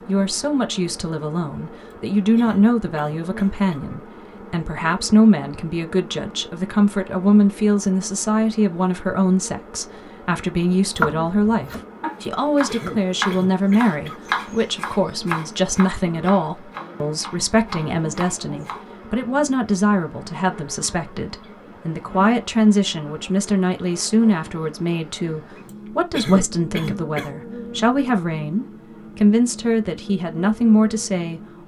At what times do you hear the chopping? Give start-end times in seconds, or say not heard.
10.9-18.8.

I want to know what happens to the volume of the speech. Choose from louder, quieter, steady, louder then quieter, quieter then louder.
steady.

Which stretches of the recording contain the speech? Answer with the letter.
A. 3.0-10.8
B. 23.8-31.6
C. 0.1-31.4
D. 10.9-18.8
C.